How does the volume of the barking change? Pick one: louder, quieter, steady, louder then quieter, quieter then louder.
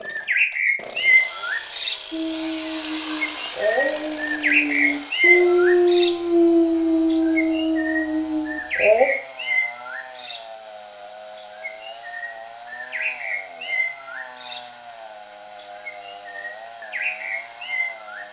louder then quieter.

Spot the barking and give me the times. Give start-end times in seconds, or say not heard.
2.1-9.1.